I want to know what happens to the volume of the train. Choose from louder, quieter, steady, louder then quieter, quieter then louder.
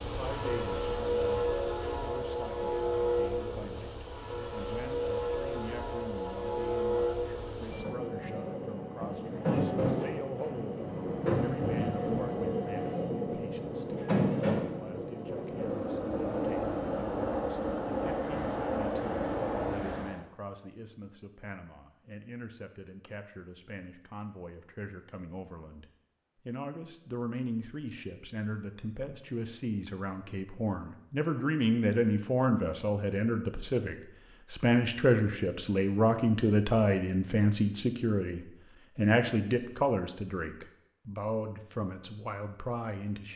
steady.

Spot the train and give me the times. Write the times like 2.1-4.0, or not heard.
0.0-20.2.